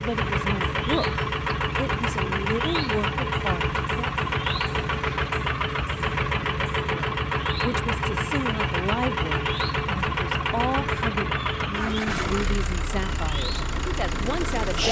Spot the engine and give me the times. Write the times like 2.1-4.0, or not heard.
0.0-14.8.